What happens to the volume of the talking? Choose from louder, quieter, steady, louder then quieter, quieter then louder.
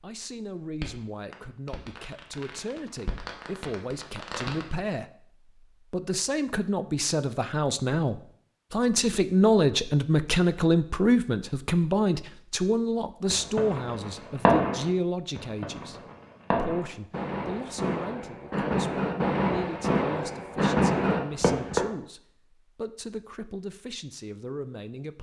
louder then quieter.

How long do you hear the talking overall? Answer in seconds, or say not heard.
25 s.